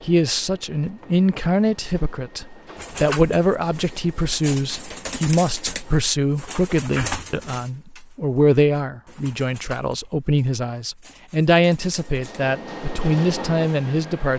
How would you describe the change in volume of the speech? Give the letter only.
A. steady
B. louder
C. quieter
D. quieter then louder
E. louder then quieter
A.